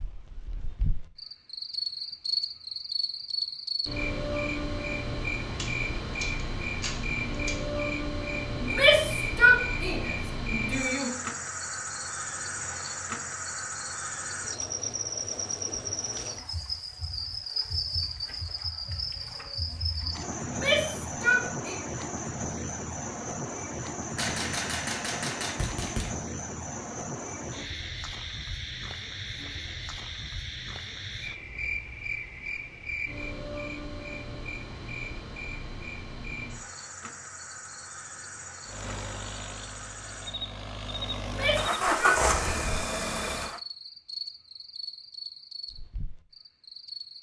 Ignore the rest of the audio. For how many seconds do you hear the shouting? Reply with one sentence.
The shouting can be heard for 5 seconds in total.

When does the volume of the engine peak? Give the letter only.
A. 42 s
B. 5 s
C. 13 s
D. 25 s
A.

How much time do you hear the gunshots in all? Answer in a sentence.
You can hear the gunshots for 4 seconds altogether.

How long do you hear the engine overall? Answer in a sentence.
You can hear the engine for 5 seconds altogether.